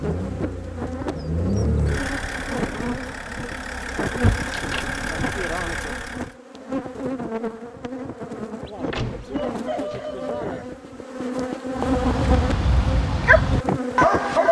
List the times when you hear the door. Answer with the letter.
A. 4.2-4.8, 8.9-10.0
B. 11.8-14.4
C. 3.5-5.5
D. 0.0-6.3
A.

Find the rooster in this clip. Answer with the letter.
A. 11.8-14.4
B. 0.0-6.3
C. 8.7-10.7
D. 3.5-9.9
C.